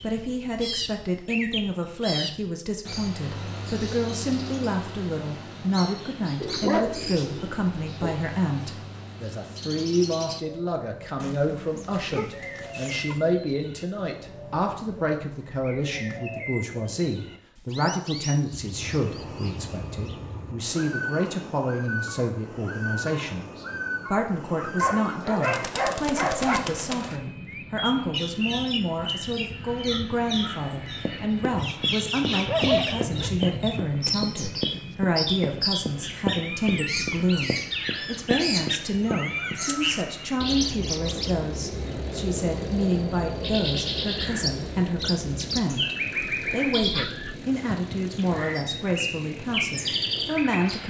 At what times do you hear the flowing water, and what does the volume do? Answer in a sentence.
The flowing water can't be heard in this clip.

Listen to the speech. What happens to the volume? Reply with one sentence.
The volume of the speech stays about the same.